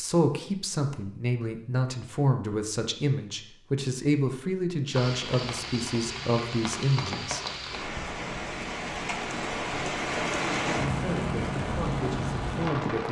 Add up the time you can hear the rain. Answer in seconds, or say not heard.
8 s.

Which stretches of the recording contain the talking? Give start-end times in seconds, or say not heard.
0.0-7.4, 10.8-13.0.